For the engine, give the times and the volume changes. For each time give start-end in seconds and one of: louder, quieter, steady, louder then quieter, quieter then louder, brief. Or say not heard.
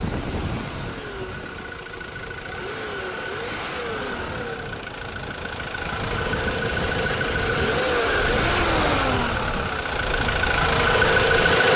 0.0-11.7 louder.